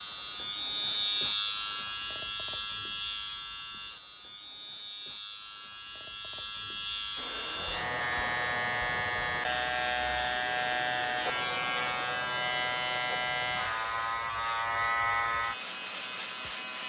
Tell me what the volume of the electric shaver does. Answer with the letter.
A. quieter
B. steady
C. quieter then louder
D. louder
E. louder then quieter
C.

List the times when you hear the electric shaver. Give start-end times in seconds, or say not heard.
0.0-16.8.